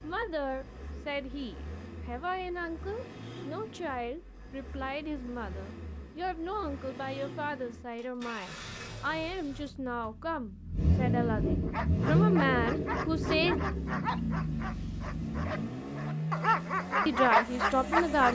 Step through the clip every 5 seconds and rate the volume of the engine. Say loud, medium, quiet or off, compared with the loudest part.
quiet, quiet, loud, medium.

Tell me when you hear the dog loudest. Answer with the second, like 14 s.
17 s.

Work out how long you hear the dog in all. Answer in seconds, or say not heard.
7 s.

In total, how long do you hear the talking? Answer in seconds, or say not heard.
15 s.